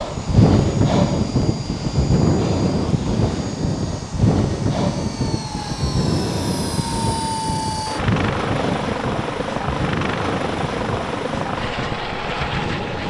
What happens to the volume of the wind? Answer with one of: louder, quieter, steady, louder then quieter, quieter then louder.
quieter.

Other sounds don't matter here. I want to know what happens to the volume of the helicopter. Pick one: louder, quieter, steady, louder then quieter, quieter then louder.
louder.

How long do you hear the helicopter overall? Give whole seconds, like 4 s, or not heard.
13 s.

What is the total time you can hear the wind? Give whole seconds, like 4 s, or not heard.
13 s.